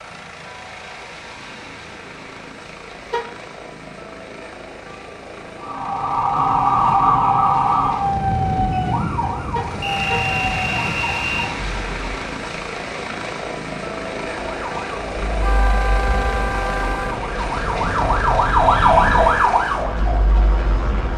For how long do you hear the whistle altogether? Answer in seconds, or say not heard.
2 s.